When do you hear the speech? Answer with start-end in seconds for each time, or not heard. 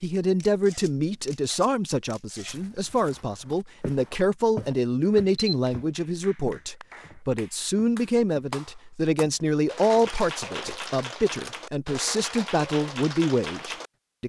0.0-14.2.